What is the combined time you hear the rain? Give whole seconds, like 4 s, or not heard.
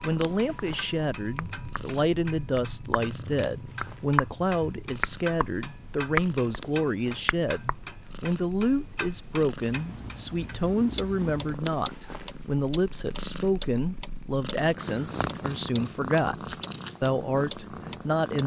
not heard.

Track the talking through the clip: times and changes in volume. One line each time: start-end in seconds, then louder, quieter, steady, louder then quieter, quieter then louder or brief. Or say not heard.
0.0-18.4 steady.